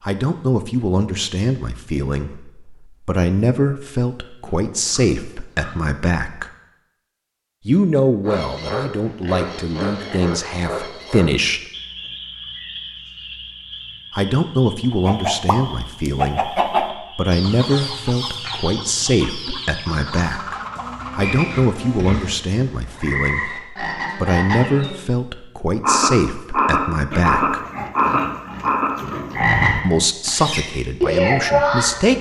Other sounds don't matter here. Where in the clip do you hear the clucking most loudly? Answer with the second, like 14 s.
17 s.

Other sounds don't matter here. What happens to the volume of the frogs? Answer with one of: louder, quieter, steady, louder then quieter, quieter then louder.
quieter then louder.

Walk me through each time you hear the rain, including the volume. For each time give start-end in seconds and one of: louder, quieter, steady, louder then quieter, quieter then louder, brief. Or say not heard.
not heard.